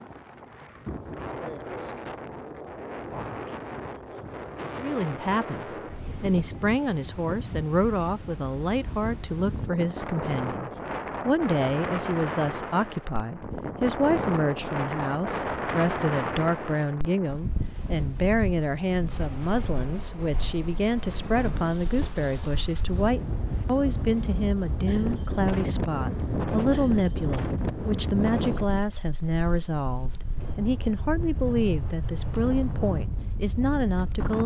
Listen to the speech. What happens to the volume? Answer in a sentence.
The loudness of the speech stays about the same.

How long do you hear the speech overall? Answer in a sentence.
The speech can be heard for 30 seconds in total.